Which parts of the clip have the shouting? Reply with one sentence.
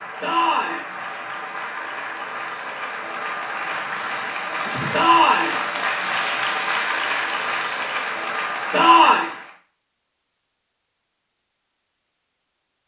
The shouting can be heard from 0.2 to 0.8 s, from 4.9 to 5.5 s and from 8.7 to 9.2 s.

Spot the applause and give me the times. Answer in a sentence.
The applause can be heard from 0.0 to 9.6 s.